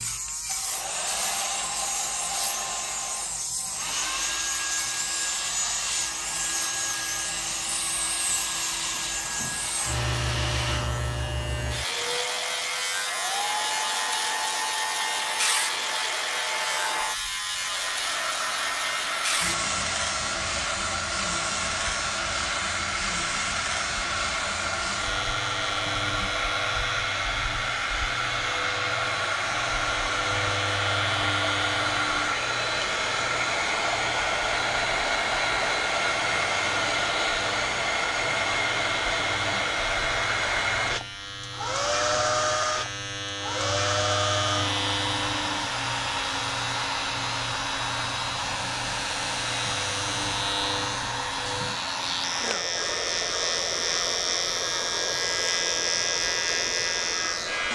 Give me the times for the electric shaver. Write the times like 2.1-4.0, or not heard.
0.0-57.7.